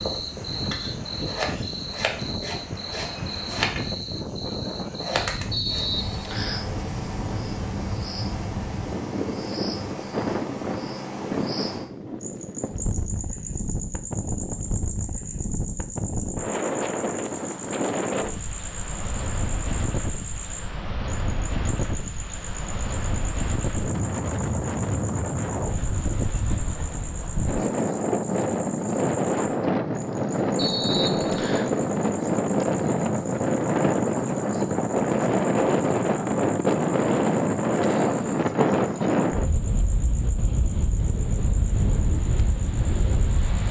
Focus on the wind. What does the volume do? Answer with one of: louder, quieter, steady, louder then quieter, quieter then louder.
louder.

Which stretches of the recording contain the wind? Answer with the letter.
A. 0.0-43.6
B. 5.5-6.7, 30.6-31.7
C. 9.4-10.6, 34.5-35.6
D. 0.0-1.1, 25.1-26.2
A.